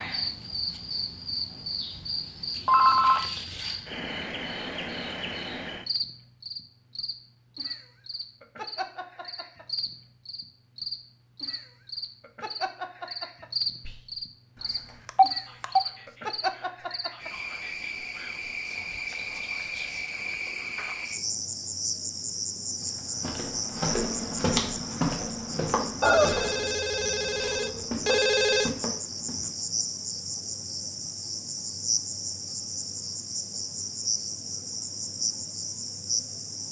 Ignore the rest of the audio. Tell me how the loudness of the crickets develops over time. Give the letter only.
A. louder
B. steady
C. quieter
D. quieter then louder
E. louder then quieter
B.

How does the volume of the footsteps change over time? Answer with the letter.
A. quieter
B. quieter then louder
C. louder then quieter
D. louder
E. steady
A.